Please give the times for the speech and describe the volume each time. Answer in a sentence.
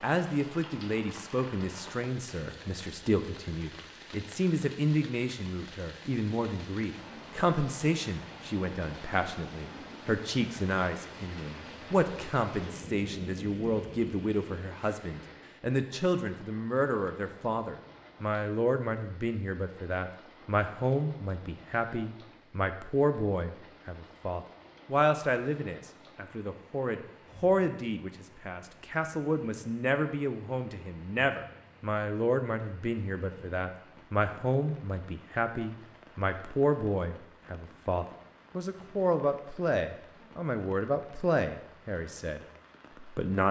You can hear the speech from 0.0 to 43.4 s, at a steady volume.